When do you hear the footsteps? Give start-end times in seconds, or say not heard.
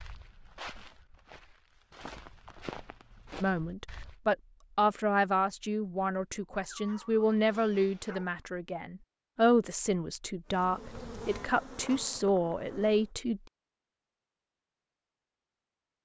0.0-4.2.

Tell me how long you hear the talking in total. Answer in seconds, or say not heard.
10 s.